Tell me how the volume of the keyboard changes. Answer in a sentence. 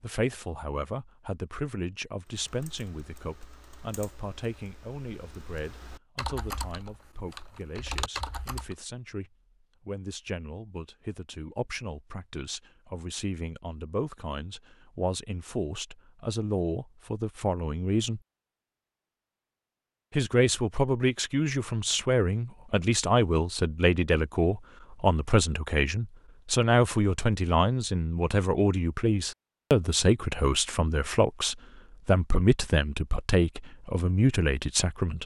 The loudness of the keyboard goes up.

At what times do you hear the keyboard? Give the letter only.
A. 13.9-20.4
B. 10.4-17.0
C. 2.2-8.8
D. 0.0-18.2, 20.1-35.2
C.